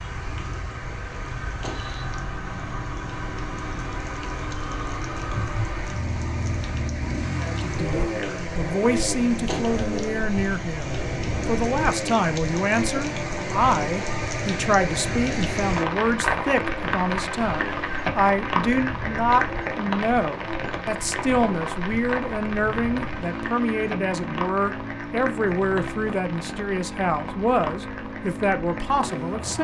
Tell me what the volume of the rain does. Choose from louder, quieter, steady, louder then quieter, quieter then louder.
louder then quieter.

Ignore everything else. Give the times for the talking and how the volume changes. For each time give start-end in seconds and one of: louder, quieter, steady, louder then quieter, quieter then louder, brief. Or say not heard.
7.4-29.5 steady.